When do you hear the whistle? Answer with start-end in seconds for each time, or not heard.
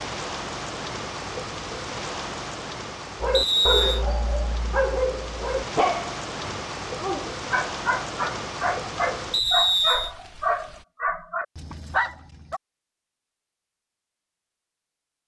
3.3-4.0, 9.3-10.1.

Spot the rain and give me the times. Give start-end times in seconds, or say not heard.
0.0-10.8.